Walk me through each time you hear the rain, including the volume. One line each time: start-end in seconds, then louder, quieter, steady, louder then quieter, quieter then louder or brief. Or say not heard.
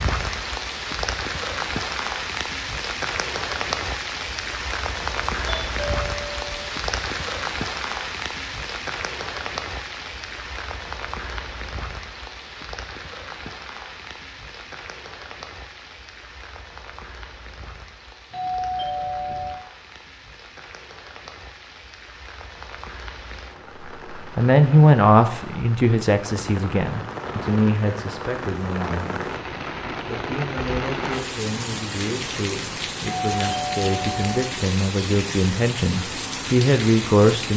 0.0-37.5 quieter then louder.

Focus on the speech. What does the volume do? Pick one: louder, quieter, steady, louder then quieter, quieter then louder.
quieter then louder.